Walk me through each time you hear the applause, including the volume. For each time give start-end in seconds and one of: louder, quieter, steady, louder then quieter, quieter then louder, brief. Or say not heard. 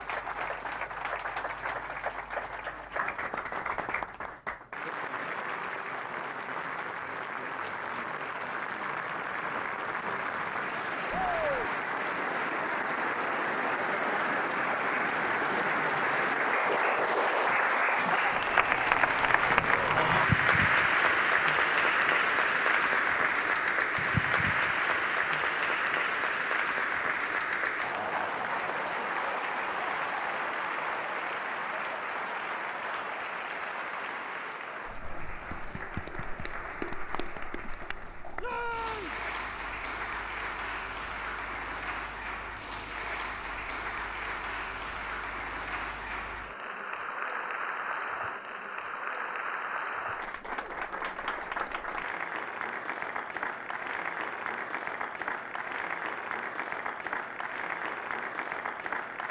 0.0-59.2 louder then quieter.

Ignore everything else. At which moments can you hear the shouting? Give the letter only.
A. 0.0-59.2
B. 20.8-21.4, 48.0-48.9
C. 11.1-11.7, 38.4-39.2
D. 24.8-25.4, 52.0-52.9
C.